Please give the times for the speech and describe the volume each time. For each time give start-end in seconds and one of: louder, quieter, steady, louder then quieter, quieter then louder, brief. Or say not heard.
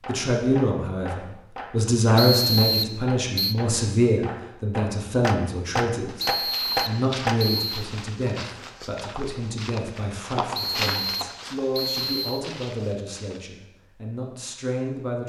0.1-15.2 quieter.